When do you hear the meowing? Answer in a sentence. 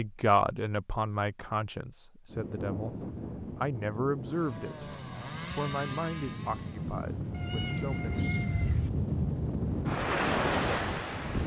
You can hear the meowing from 7.3 to 8.9 s.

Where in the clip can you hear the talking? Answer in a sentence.
The talking can be heard from 0.0 to 3.0 s and from 3.5 to 8.2 s.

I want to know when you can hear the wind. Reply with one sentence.
The wind can be heard from 2.3 to 11.4 s.